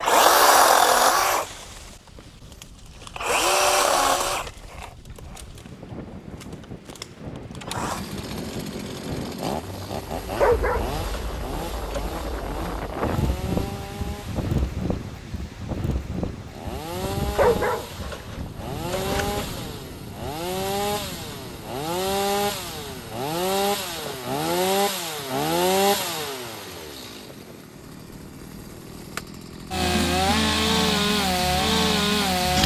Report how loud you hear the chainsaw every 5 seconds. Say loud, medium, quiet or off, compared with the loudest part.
loud, quiet, quiet, quiet, medium, medium, loud.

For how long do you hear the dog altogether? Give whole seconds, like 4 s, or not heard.
4 s.